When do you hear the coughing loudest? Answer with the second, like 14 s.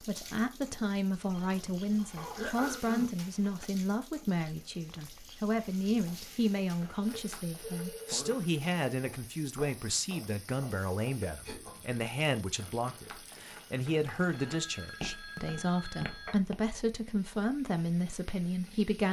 3 s.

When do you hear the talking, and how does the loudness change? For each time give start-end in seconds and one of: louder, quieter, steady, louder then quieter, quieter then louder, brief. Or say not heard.
0.0-19.0 steady.